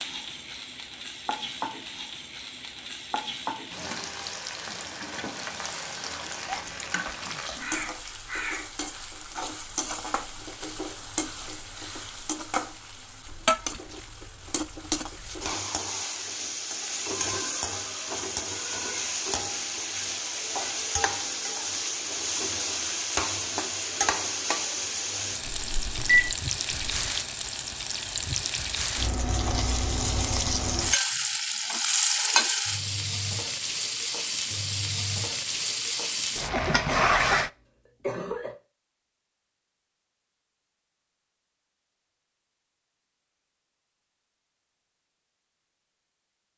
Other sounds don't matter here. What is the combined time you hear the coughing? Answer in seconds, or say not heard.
3 s.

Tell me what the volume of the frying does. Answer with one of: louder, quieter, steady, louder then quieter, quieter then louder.
louder.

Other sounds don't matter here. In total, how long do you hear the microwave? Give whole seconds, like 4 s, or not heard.
2 s.